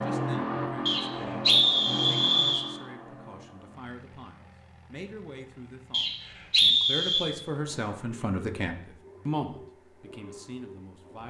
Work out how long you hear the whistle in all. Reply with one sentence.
The whistle can be heard for 3 seconds in total.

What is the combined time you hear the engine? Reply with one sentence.
The engine can be heard for 11 seconds in total.